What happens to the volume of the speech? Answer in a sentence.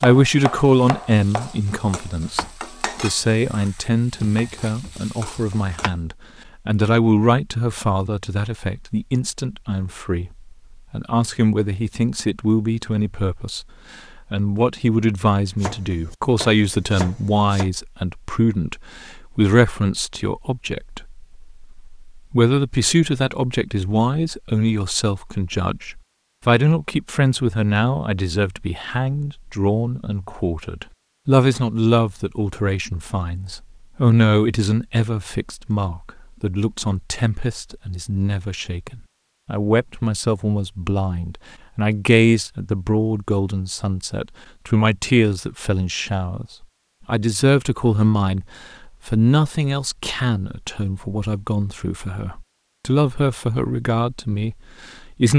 The loudness of the speech stays about the same.